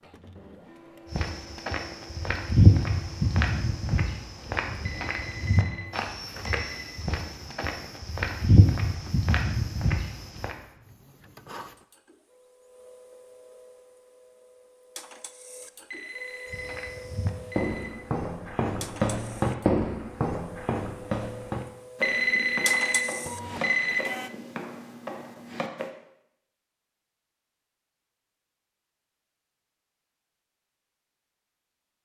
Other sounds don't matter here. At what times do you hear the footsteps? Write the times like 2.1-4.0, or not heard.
1.1-10.6, 16.5-25.9.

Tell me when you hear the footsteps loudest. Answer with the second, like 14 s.
3 s.